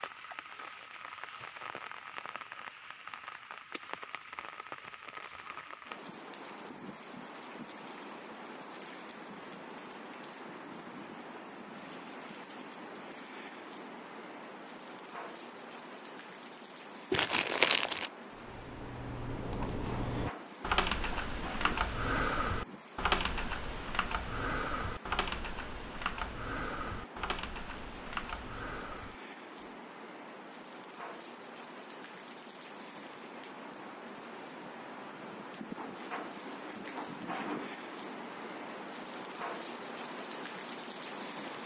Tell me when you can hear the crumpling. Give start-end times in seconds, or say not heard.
17.1-18.1.